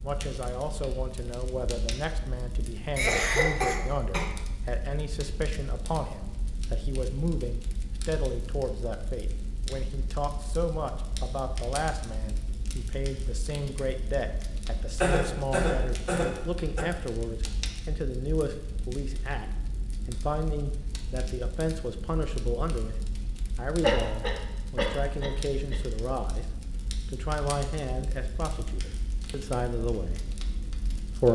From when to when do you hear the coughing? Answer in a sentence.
The coughing can be heard from 3.0 to 4.2 s, from 15.0 to 16.9 s and from 23.8 to 25.8 s.